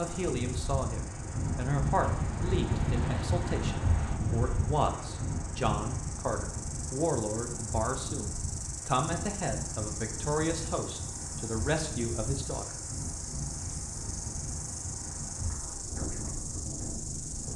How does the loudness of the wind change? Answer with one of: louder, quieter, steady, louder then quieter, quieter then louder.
quieter.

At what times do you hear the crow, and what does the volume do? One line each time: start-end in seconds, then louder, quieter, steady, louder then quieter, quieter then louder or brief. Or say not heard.
not heard.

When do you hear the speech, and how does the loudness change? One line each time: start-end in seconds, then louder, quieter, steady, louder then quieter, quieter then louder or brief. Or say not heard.
0.0-12.8 steady.